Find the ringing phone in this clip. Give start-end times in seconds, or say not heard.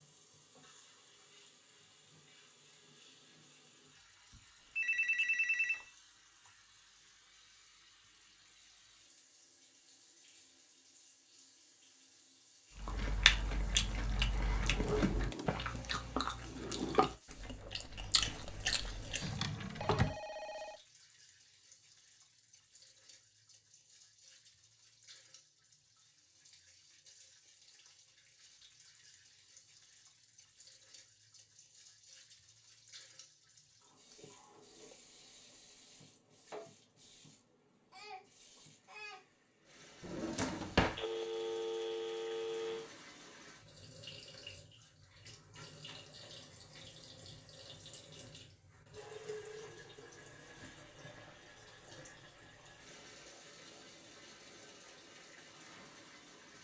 4.8-5.8, 19.8-20.8, 41.0-42.9.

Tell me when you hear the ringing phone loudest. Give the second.
5 s.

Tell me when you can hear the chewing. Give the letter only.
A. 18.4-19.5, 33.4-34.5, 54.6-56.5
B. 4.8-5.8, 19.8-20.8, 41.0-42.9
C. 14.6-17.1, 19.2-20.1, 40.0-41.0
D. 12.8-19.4
D.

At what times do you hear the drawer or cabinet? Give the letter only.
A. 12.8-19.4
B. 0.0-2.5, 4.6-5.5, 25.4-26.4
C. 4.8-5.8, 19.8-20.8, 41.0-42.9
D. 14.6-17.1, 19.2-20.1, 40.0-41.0
D.